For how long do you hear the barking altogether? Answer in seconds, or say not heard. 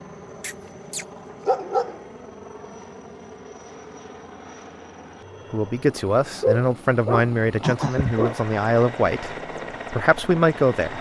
4 s.